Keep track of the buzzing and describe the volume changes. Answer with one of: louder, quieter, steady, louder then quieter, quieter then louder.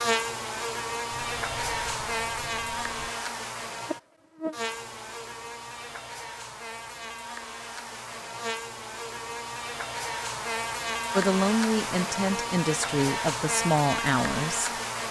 quieter then louder.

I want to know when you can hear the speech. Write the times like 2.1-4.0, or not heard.
11.2-14.7.